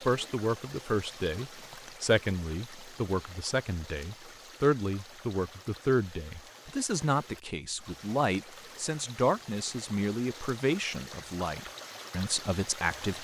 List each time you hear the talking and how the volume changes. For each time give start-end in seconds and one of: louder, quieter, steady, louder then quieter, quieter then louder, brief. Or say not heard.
0.1-13.1 steady.